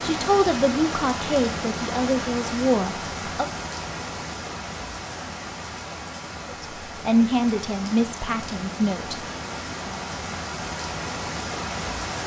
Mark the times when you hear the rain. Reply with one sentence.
The rain can be heard from 0.0 to 12.2 s.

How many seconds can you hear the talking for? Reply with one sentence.
You can hear the talking for 6 seconds altogether.